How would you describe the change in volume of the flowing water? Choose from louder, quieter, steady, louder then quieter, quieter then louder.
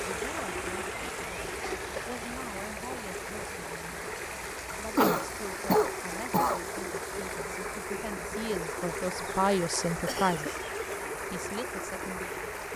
steady.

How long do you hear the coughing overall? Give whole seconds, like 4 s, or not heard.
3 s.